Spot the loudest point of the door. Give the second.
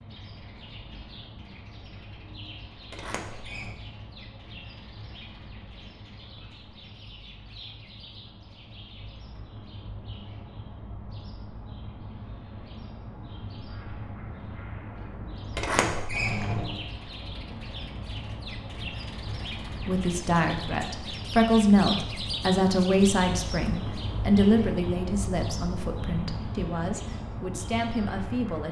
16 s.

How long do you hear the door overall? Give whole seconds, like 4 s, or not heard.
2 s.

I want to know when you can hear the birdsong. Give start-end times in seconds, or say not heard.
0.0-28.6.